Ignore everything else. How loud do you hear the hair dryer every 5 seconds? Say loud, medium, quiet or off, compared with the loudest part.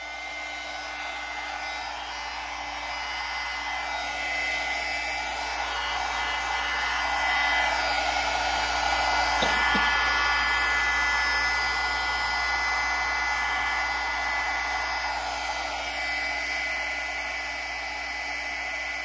medium, loud, loud, medium.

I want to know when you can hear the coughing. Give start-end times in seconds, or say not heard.
9.4-10.0.